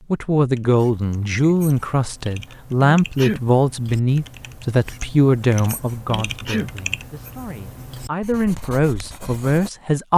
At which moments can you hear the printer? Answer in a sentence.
The printer can't be heard in this clip.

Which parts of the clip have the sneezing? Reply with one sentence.
You can hear the sneezing from 3.0 to 3.5 s and from 6.0 to 6.7 s.